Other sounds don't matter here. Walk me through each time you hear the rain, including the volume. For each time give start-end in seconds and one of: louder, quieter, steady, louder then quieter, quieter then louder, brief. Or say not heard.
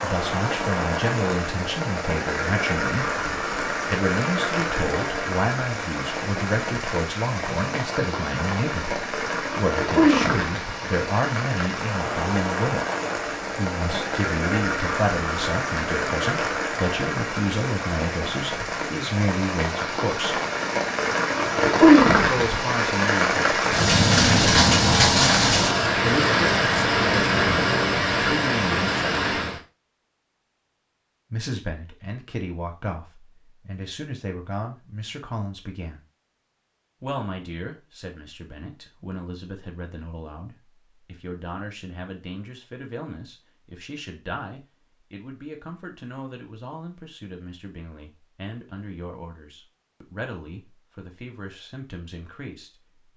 0.0-29.6 louder.